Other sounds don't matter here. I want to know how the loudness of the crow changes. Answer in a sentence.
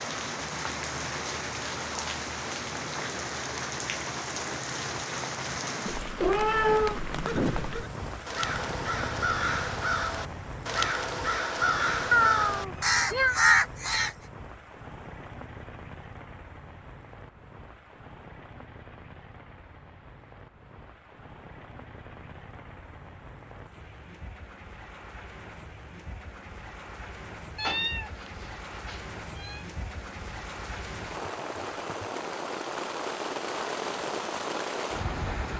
The volume of the crow goes up.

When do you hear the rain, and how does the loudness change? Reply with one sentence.
You can hear the rain from 0.0 to 35.5 s, getting quieter then louder.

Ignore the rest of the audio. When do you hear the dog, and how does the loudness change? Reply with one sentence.
You can't hear the dog here.